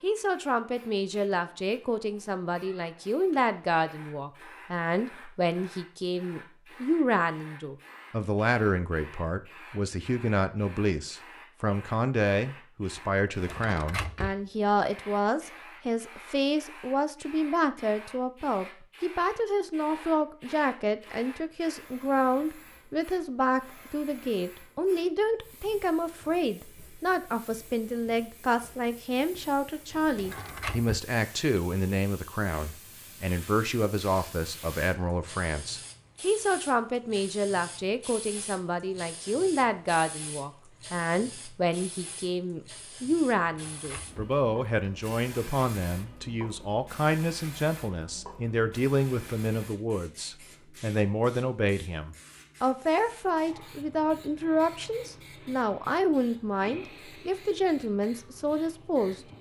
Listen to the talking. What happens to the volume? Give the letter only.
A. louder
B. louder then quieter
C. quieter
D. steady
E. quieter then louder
D.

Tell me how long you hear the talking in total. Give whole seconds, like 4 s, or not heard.
59 s.